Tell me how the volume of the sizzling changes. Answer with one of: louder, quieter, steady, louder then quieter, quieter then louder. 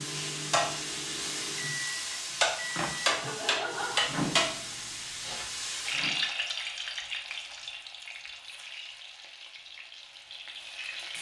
quieter.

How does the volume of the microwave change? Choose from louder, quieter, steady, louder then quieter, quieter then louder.
louder then quieter.